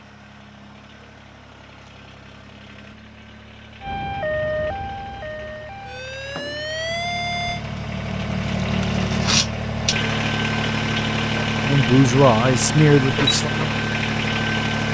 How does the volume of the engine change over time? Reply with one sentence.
The loudness of the engine goes up.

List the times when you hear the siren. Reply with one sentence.
You can hear the siren from 3.8 to 7.6 s.